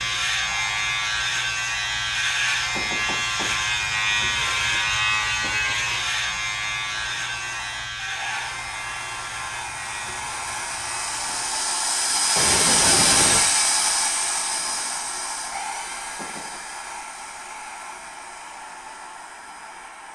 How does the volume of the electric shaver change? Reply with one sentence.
The volume of the electric shaver goes down.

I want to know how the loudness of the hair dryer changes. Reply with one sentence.
The volume of the hair dryer goes up, then down.